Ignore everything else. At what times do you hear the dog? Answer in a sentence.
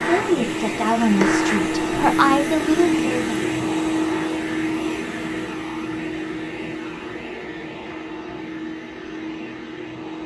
You can't hear the dog here.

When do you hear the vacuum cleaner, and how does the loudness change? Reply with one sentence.
You can hear the vacuum cleaner from 0.0 to 10.2 s, getting quieter.